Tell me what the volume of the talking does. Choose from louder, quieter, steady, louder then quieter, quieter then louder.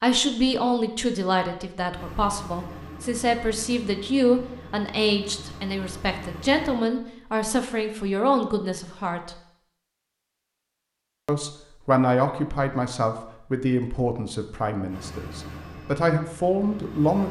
steady.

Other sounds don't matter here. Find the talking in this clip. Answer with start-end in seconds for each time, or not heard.
0.0-9.3, 11.2-17.2.